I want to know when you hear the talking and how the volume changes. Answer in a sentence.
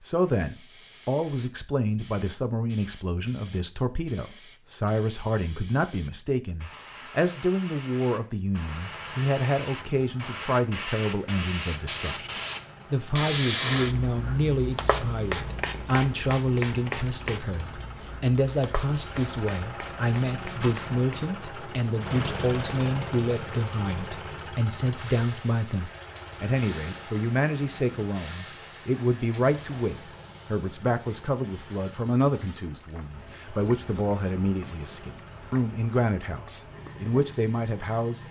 The talking can be heard from 0.1 to 12.3 s, at a steady volume; and from 12.9 to 38.2 s, at a steady volume.